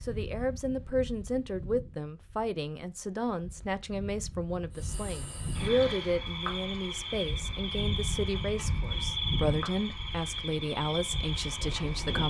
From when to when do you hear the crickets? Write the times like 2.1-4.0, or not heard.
4.7-12.2.